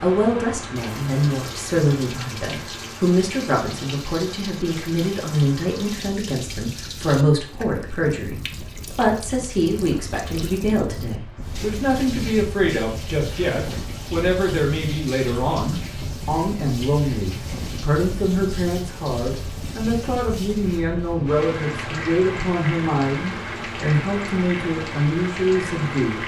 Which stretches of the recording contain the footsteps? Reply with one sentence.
You can't hear the footsteps here.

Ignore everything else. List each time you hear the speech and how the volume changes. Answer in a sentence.
You can hear the speech from 0.0 to 26.2 s, at a steady volume.